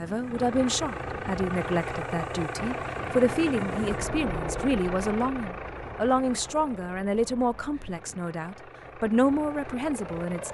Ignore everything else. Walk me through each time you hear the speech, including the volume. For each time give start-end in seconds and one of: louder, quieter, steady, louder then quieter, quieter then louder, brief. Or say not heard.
0.0-10.4 steady.